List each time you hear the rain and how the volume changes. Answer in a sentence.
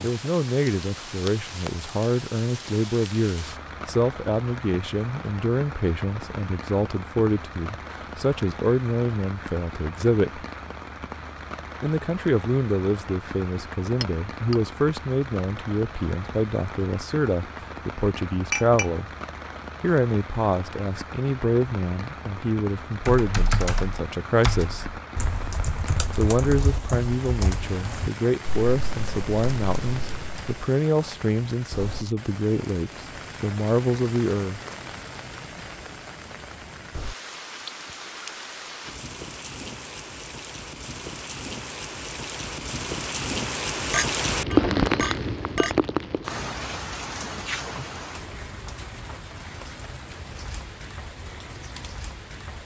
The rain can be heard from 0.0 to 52.6 s, getting louder.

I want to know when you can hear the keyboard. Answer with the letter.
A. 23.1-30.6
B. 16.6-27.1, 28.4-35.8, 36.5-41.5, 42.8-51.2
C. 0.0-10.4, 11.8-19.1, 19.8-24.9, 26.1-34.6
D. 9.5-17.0
A.